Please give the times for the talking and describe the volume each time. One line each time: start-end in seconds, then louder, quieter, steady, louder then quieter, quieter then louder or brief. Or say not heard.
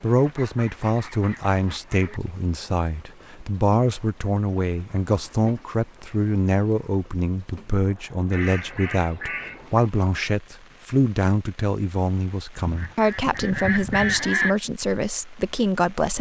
0.0-16.1 steady.